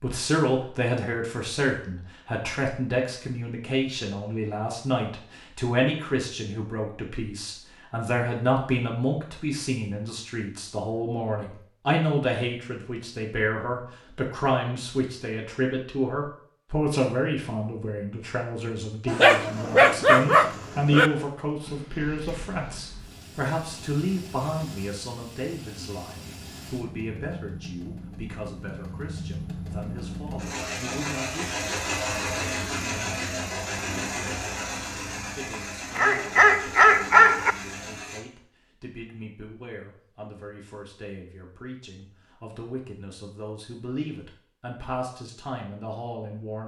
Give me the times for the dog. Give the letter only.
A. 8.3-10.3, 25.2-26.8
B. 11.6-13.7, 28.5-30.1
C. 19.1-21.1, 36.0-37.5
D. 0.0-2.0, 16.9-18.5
C.